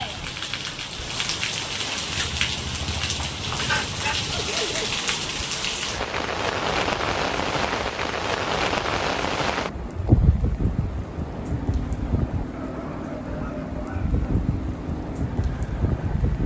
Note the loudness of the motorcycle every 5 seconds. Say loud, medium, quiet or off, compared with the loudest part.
loud, off, loud, loud.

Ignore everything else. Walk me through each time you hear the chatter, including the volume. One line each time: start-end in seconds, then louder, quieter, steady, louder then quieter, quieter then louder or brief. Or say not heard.
not heard.